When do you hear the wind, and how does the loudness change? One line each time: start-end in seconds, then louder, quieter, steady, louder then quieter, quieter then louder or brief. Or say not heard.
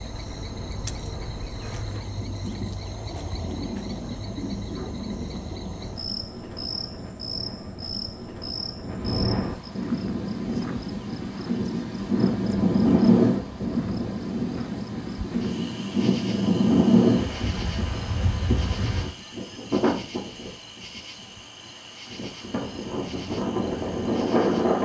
0.0-21.0 louder
22.1-24.8 brief.